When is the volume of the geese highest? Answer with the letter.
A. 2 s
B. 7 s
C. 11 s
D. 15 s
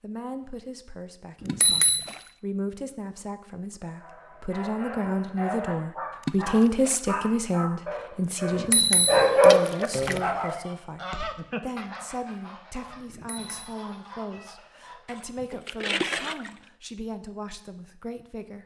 C.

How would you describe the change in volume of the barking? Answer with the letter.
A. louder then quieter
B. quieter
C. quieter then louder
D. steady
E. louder
E.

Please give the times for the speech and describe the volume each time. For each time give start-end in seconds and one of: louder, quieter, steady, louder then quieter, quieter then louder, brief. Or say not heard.
0.0-18.6 louder then quieter.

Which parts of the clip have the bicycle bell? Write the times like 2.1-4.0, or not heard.
1.4-2.1, 8.5-9.3, 13.1-13.7.